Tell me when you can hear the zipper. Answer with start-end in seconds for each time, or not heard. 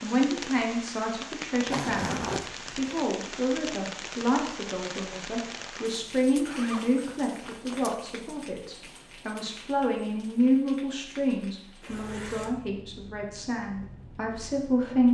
1.6-3.0, 6.5-8.0, 11.8-12.6.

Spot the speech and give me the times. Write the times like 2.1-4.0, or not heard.
0.0-15.0.